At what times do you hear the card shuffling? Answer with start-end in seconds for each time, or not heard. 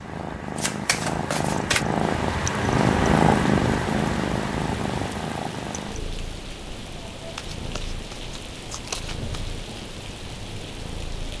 0.6-1.9, 7.3-9.3.